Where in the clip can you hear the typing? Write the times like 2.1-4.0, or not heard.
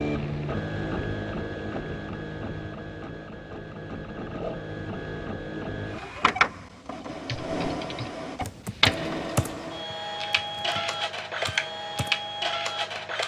7.0-12.2.